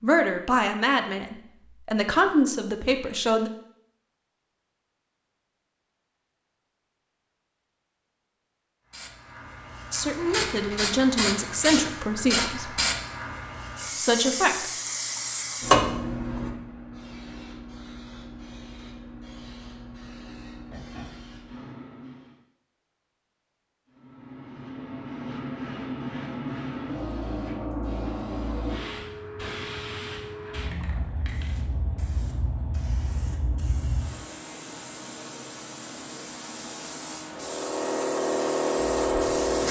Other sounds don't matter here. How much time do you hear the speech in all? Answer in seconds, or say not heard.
7 s.